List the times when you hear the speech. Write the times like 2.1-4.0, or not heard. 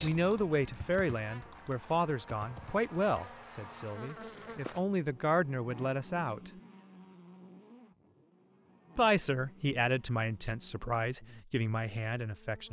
0.0-6.5, 8.9-12.6.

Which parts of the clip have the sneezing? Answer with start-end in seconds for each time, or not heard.
not heard.